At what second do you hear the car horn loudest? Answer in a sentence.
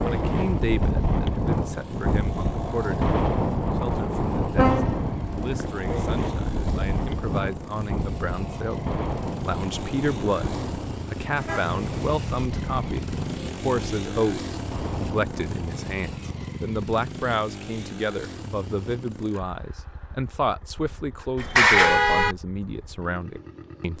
The loudest moment of the car horn is at 22 seconds.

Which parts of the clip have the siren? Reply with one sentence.
You can't hear the siren here.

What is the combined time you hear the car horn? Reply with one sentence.
The car horn can be heard for 3 seconds in total.